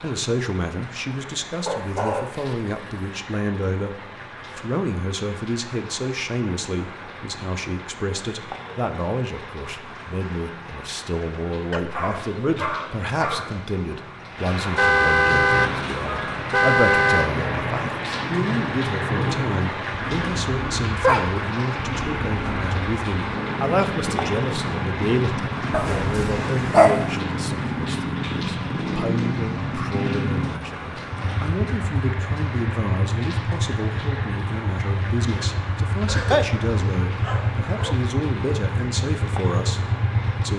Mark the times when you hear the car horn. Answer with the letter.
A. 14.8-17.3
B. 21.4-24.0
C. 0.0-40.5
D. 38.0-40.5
A.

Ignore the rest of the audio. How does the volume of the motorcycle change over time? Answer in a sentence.
The loudness of the motorcycle stays about the same.